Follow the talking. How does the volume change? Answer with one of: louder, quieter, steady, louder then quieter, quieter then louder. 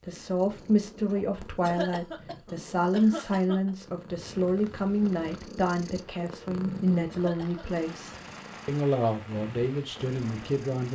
steady.